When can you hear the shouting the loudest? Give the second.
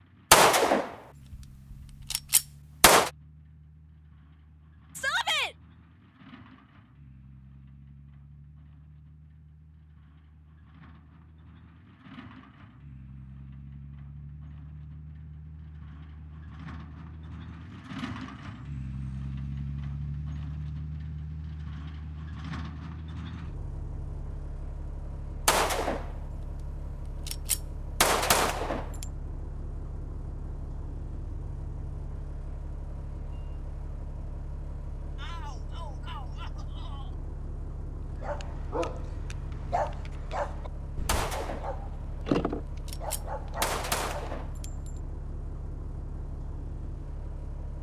5 s.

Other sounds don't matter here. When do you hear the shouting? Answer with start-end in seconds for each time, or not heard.
5.0-5.5, 35.1-37.1.